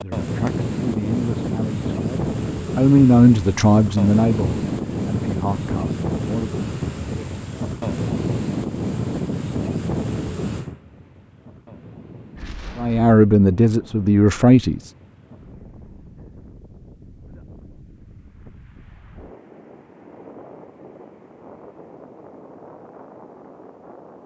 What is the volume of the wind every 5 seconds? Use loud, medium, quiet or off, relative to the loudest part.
loud, loud, medium, quiet, quiet.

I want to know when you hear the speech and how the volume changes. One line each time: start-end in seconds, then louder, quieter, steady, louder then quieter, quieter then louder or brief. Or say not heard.
0.0-7.3 louder then quieter
12.8-14.8 brief.